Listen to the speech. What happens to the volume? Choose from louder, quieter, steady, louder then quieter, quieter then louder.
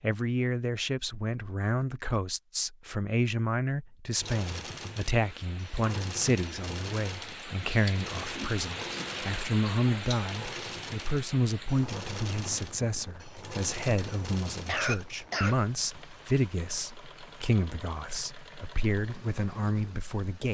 steady.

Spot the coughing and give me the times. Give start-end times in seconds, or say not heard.
14.7-15.8.